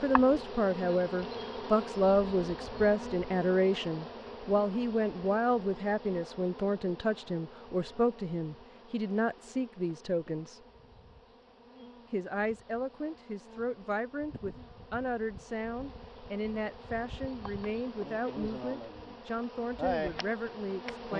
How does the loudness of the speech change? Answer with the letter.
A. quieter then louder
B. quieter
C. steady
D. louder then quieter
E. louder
B.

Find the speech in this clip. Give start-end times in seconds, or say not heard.
0.0-10.6, 12.1-21.1.